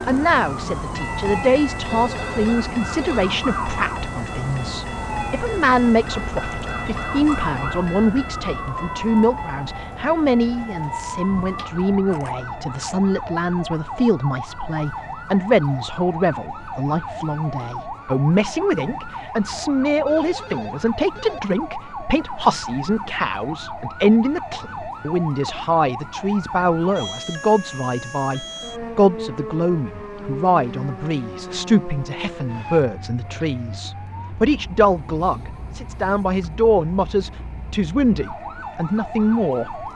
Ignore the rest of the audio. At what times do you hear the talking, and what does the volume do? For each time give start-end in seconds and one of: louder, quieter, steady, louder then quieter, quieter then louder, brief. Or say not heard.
0.1-39.9 steady.